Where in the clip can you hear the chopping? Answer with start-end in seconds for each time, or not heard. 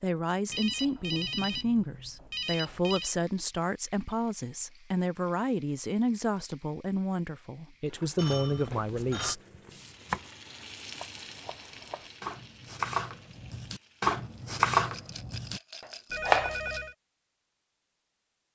8.9-16.7.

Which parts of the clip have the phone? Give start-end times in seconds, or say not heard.
0.5-3.1, 8.2-9.3, 16.1-16.9.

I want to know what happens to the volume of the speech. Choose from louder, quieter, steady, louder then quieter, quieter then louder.
steady.